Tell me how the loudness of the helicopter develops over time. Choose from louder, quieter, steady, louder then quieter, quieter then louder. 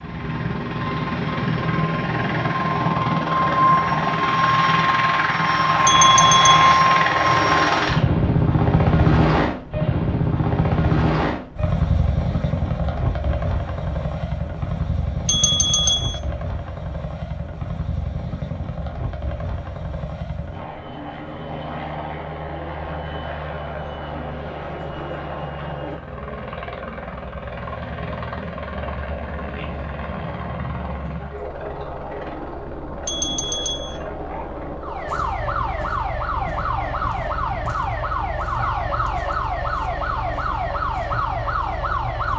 quieter.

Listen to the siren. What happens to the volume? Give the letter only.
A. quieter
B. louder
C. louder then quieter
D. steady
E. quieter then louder
D.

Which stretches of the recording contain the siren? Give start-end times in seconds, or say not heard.
34.8-42.3.